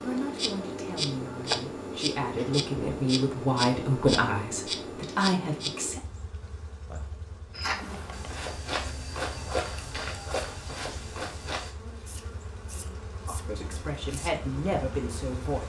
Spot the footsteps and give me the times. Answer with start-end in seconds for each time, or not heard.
7.5-11.8.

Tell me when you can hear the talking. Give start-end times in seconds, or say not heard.
0.0-6.0, 13.2-15.6.